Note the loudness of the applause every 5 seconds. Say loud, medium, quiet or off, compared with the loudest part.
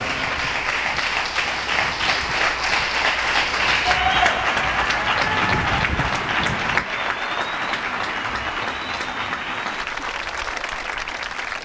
loud, loud, medium.